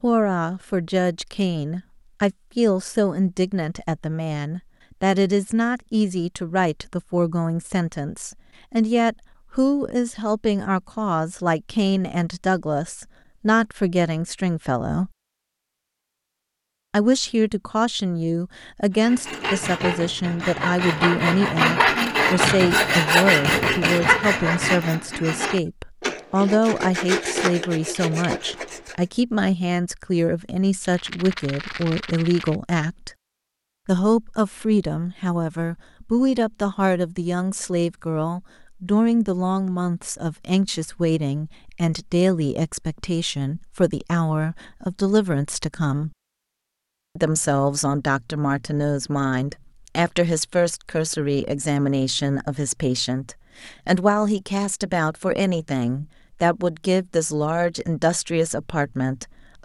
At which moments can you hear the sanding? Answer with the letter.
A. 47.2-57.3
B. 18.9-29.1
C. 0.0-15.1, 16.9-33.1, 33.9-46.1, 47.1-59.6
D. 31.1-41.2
B.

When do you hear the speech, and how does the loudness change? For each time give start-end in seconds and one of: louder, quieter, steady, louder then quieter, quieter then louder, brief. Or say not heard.
0.0-15.1 steady
16.9-33.1 steady
33.9-46.1 steady
47.1-59.6 steady.